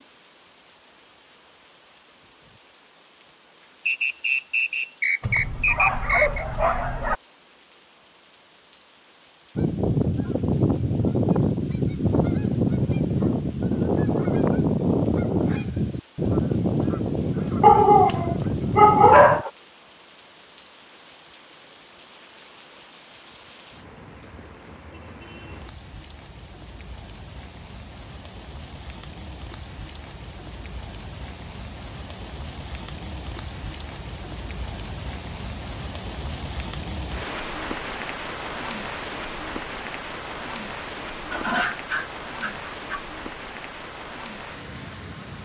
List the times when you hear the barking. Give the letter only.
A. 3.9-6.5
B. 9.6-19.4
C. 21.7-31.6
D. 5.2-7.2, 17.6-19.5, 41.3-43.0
D.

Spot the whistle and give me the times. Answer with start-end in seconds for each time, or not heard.
3.9-6.5.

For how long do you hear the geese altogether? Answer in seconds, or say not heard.
10 s.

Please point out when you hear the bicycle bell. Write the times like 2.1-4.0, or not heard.
not heard.